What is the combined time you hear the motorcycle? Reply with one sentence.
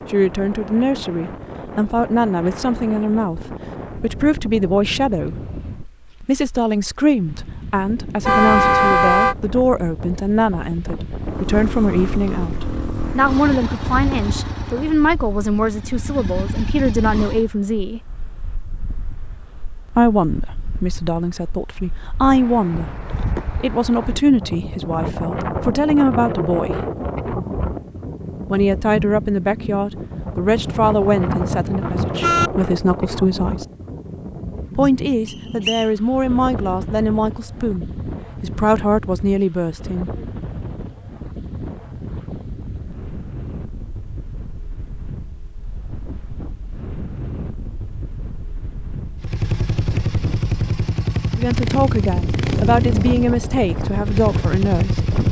You can hear the motorcycle for 12 seconds altogether.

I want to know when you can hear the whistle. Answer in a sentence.
The whistle can be heard from 35.2 to 35.9 s.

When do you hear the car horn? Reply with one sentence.
The car horn can be heard from 8.2 to 9.3 s and from 30.6 to 32.5 s.